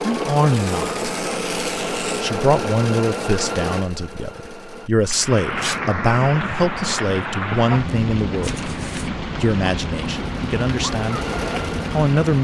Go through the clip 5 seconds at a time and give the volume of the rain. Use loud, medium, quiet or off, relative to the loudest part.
off, loud, loud.